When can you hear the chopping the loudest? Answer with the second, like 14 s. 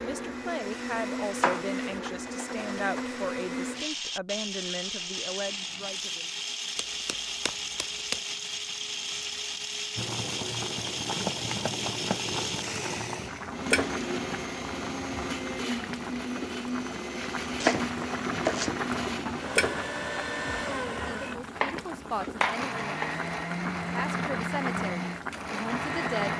18 s.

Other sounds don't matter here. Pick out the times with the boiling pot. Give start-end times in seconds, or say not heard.
9.9-26.3.